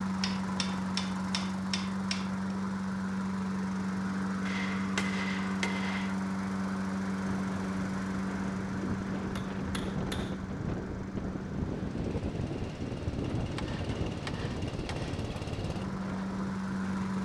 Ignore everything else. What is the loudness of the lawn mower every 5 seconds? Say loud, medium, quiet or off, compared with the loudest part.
loud, loud, medium, loud.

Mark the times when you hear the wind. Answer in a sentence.
The wind can be heard from 7.2 to 17.1 s.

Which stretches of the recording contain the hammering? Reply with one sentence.
You can hear the hammering from 0.2 to 2.3 s, from 4.5 to 6.2 s, from 8.7 to 10.5 s and from 13.6 to 15.3 s.